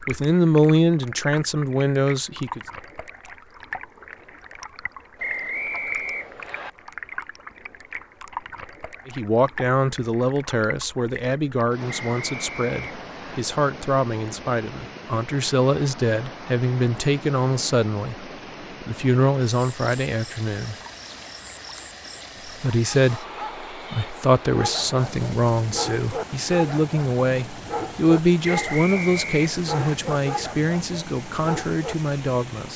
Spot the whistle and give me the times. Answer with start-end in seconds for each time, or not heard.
5.2-6.7, 11.8-13.4, 28.4-29.9.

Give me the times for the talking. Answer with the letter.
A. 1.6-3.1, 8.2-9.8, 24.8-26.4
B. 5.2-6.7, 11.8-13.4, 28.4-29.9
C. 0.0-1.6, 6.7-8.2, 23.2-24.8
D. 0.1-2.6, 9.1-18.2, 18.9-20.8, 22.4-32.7
D.